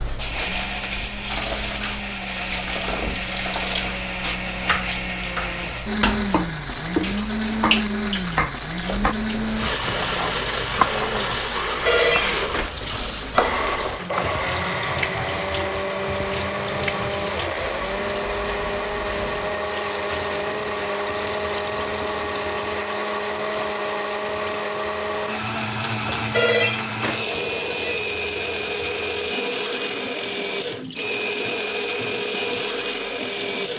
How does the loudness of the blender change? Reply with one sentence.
The volume of the blender stays about the same.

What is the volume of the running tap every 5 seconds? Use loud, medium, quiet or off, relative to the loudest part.
loud, loud, loud, loud, medium, medium, medium.